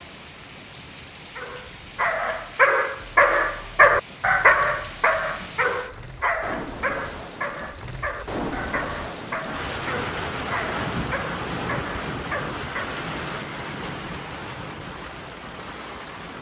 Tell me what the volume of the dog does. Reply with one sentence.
The volume of the dog goes down.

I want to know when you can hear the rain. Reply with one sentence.
You can hear the rain from 0.0 to 16.3 s.